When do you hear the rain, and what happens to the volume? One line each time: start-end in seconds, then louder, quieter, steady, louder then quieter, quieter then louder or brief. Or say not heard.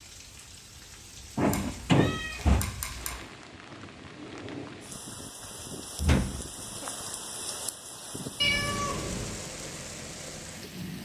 0.0-11.0 louder.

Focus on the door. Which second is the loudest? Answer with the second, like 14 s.
2 s.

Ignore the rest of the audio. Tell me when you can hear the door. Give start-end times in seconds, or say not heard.
1.4-2.6, 6.0-6.9.